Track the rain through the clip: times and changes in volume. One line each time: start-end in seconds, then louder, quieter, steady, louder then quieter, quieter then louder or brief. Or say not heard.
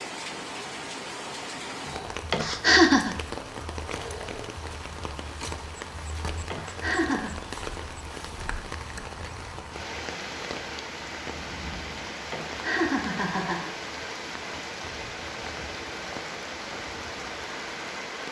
0.0-18.2 steady.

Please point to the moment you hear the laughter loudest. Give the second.
3 s.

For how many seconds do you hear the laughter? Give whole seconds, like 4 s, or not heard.
3 s.